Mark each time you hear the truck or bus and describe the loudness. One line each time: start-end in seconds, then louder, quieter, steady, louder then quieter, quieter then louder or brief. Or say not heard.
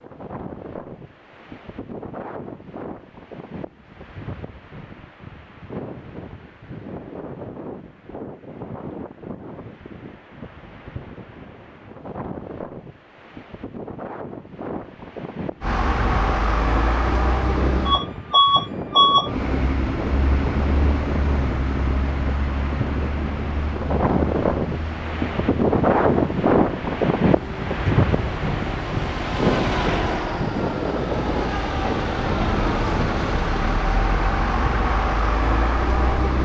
15.6-36.4 quieter then louder.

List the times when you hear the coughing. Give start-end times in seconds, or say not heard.
not heard.